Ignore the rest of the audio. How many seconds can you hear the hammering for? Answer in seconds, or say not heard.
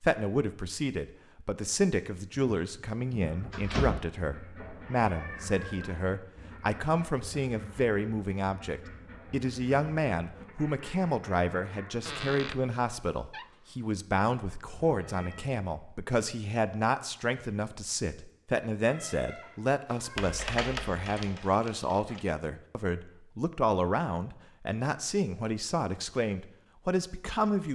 2 s.